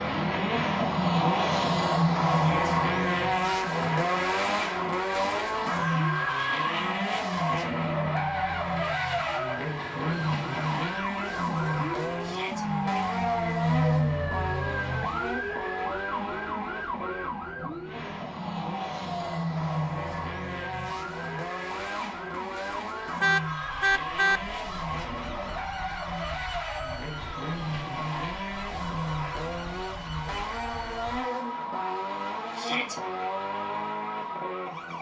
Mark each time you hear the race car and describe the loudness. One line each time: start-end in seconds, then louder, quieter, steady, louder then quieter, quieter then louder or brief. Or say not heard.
0.0-34.9 quieter.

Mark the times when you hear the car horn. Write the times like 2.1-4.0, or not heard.
23.2-24.4.